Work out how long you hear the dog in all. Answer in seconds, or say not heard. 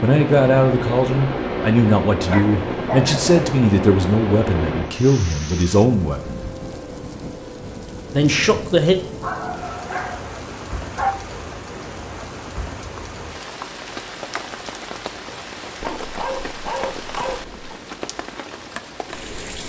5 s.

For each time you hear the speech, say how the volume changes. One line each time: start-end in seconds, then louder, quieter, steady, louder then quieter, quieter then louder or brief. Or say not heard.
0.0-6.5 steady
8.2-8.9 brief.